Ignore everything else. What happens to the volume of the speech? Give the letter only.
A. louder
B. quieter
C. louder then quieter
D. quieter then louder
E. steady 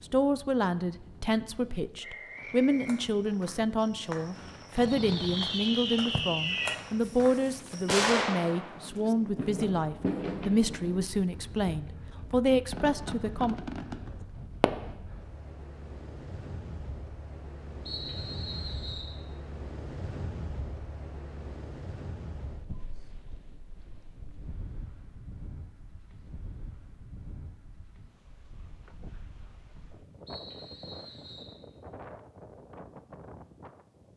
E.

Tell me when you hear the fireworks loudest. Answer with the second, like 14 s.
8 s.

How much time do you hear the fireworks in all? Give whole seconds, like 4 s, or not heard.
10 s.